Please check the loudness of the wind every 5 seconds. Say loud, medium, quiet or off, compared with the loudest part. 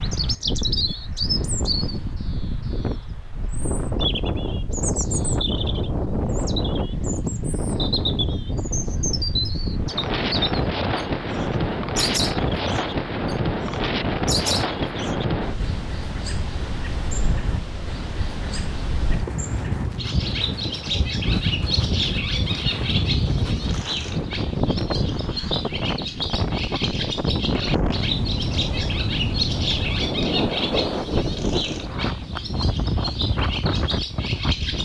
medium, loud, loud, medium, loud, loud, loud.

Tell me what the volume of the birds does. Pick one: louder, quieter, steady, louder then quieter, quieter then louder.
steady.